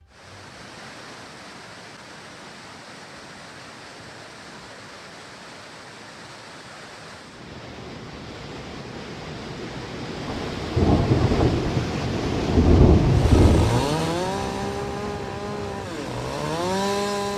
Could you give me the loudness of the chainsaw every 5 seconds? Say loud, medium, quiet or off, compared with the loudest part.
off, off, loud, loud.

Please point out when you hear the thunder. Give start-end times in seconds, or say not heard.
10.2-13.9.